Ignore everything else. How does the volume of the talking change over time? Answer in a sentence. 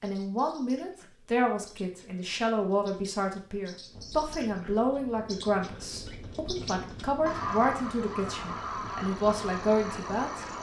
The loudness of the talking stays about the same.